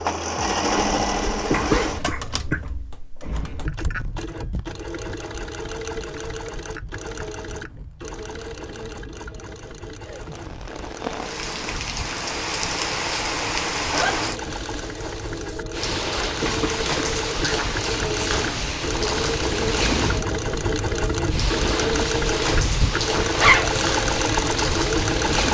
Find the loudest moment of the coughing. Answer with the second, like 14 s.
2 s.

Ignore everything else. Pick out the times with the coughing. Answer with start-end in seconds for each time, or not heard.
1.5-2.6, 16.4-17.6.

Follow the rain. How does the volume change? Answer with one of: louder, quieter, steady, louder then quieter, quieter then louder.
steady.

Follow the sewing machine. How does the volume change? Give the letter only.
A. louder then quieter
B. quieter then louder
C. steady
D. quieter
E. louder
B.